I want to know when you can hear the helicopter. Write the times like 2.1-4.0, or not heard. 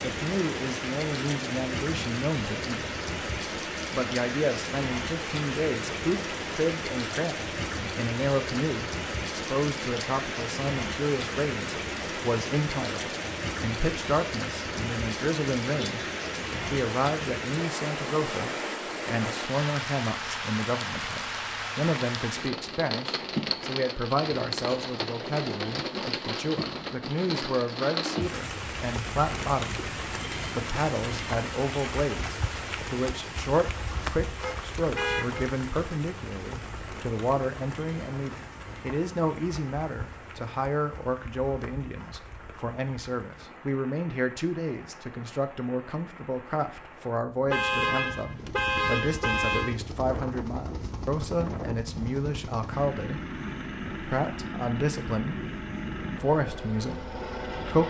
48.2-57.8.